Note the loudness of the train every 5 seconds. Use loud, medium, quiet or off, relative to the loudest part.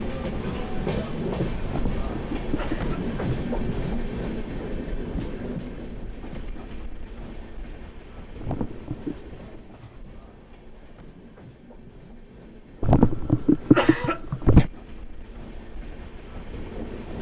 loud, medium, quiet, medium.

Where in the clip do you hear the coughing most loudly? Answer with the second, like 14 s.
14 s.